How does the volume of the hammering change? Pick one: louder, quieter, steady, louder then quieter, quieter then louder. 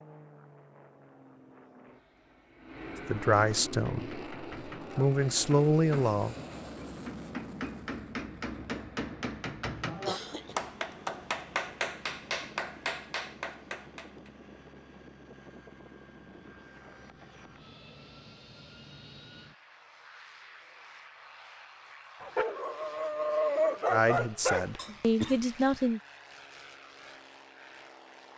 louder.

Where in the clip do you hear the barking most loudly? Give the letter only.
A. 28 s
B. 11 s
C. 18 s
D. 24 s
D.